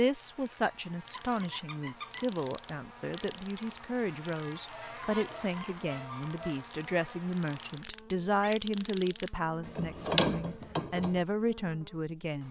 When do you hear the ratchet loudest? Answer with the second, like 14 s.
10 s.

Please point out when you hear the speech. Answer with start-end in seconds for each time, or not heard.
0.0-12.4.